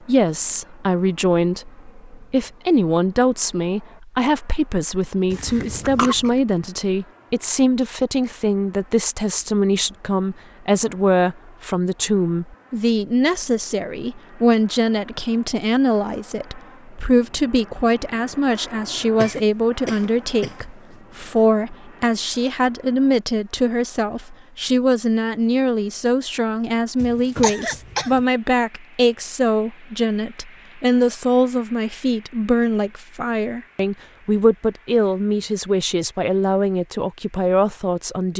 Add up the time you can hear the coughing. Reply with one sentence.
The coughing can be heard for 4 seconds in total.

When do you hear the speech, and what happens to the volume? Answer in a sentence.
The speech can be heard from 0.1 to 38.3 s, at a steady volume.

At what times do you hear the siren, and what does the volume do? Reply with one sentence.
The siren can't be heard in this clip.